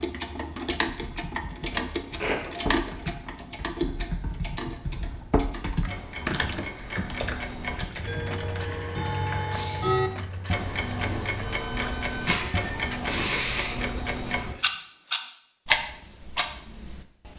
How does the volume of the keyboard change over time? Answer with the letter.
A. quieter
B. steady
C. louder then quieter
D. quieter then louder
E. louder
C.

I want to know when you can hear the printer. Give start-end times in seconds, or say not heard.
8.0-14.7.